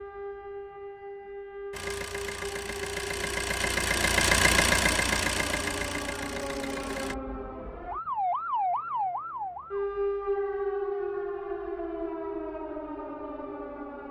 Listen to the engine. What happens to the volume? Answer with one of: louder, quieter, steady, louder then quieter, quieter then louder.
louder then quieter.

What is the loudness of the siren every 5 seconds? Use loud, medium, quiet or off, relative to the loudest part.
medium, loud, loud.